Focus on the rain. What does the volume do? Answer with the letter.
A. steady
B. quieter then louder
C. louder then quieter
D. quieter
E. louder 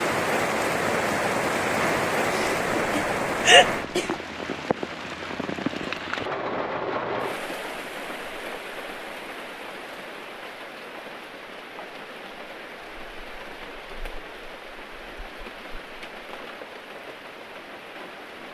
D.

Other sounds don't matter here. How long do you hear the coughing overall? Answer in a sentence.
You can hear the coughing for 2 seconds altogether.